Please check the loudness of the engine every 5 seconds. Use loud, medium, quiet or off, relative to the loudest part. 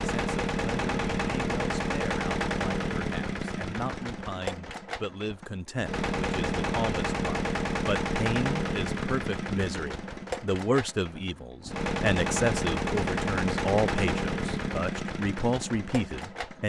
loud, loud, loud, medium.